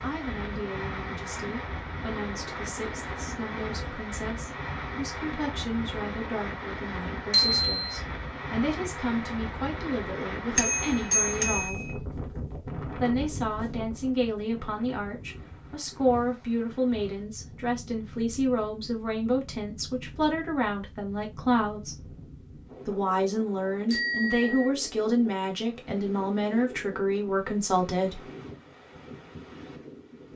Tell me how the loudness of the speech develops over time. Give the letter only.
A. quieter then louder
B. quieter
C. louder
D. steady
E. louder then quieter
C.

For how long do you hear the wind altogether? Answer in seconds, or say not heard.
30 s.